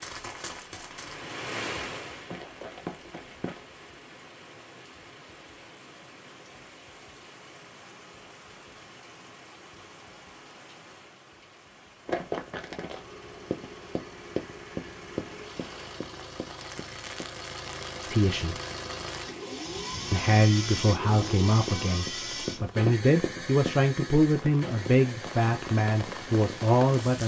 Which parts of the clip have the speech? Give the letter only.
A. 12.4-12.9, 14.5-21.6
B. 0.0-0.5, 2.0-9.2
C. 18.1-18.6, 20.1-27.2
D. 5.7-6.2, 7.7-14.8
C.